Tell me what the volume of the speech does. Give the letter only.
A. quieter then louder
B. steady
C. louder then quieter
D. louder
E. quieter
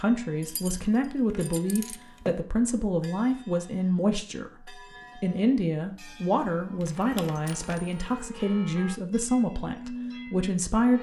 B.